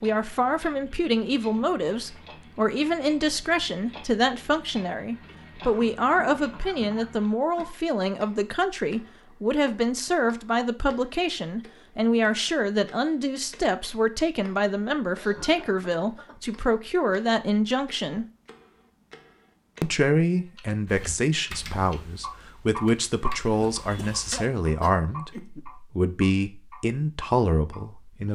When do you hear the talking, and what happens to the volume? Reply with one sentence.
You can hear the talking from 0.0 to 18.2 s, at a steady volume; and from 19.8 to 28.2 s, at a steady volume.